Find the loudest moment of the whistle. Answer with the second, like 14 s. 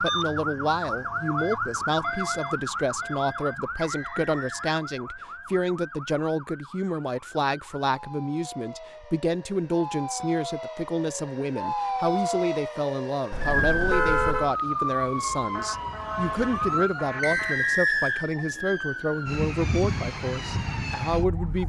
18 s.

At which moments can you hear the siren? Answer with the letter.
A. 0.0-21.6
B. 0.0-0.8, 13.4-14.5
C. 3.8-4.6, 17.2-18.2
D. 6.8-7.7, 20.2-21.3
A.